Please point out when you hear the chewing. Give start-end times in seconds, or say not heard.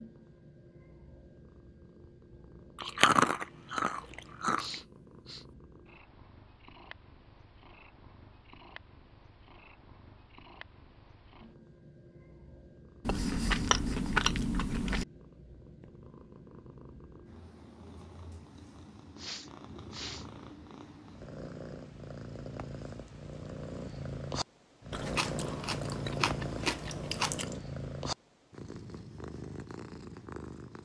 2.8-4.8, 13.1-15.1, 24.9-27.6.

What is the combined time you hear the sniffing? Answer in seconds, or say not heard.
2 s.